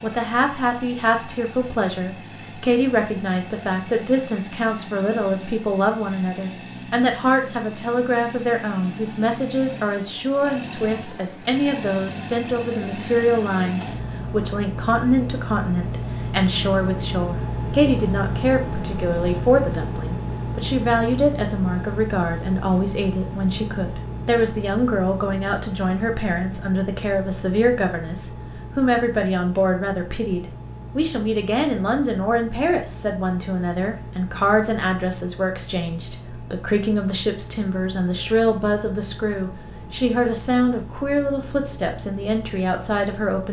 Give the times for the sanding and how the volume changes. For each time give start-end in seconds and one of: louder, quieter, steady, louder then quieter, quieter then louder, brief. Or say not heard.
not heard.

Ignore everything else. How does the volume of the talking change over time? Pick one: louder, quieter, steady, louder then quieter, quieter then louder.
steady.